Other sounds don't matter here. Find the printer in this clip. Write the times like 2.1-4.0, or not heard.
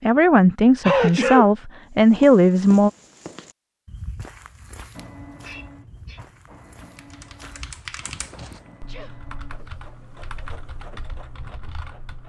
4.9-12.2.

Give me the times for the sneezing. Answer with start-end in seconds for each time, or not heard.
0.8-1.5, 5.4-6.2, 8.4-9.2.